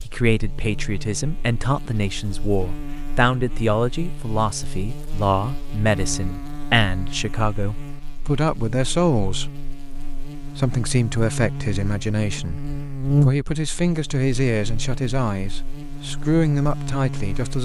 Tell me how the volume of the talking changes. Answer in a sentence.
The loudness of the talking stays about the same.